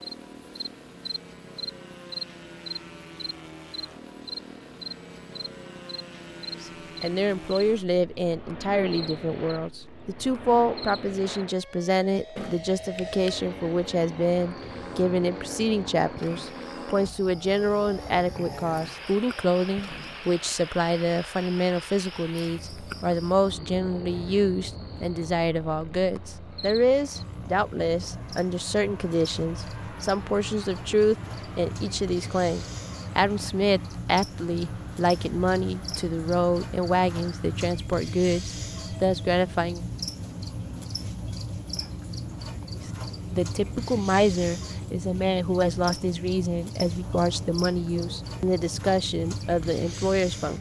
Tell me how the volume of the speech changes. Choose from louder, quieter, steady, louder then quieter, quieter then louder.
steady.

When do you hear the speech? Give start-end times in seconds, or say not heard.
6.6-39.8, 42.7-50.5.